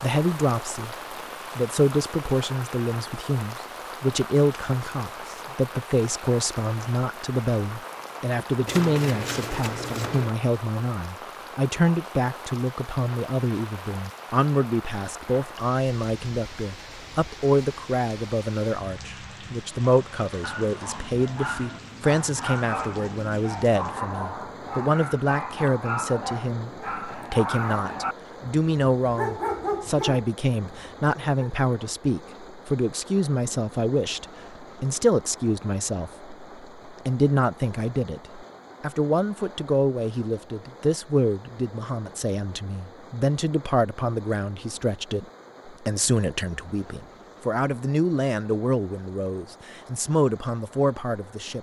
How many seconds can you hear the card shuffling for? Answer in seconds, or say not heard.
2 s.